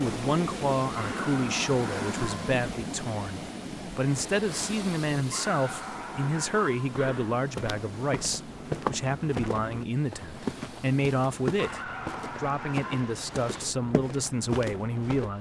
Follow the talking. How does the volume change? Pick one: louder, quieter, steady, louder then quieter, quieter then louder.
steady.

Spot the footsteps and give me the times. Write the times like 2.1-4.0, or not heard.
7.0-15.3.